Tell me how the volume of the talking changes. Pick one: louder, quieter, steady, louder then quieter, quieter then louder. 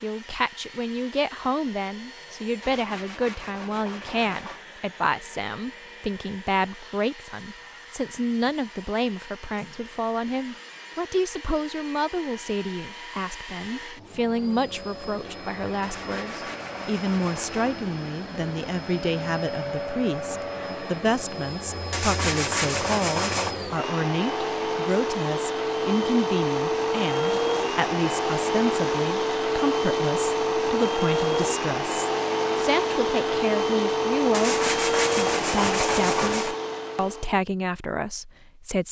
steady.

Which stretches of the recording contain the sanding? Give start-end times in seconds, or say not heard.
2.6-4.6, 15.8-17.8, 21.9-23.6, 34.3-36.5.